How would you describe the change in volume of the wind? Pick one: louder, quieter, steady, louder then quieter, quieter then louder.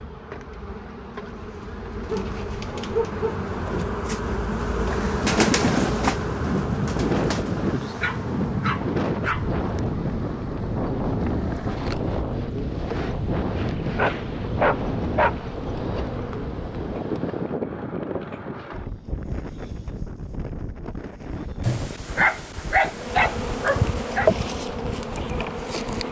quieter.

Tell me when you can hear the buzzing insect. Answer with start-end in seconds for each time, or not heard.
0.0-17.6, 22.9-26.0.